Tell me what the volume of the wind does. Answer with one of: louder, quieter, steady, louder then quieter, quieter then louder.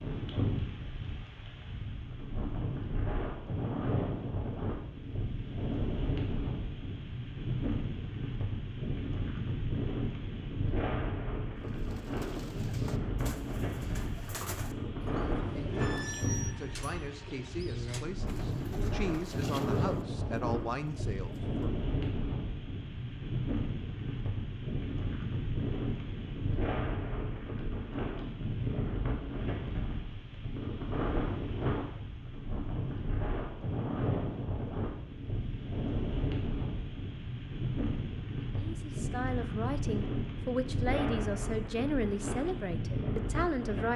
steady.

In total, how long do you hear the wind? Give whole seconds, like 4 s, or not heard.
44 s.